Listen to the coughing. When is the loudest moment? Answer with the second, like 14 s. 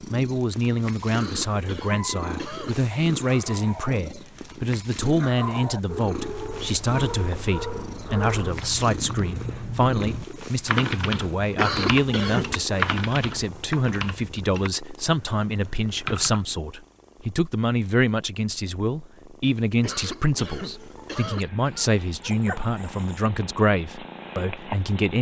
12 s.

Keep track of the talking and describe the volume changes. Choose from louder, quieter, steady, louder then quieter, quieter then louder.
steady.